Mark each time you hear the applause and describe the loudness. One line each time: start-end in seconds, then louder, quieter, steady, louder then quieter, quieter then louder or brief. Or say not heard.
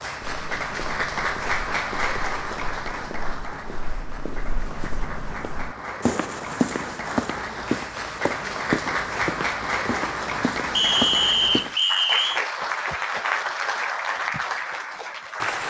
0.0-15.6 quieter then louder.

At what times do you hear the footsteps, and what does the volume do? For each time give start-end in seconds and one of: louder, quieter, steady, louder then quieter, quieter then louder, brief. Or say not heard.
0.2-11.8 louder.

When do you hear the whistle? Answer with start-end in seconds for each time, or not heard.
10.8-12.4.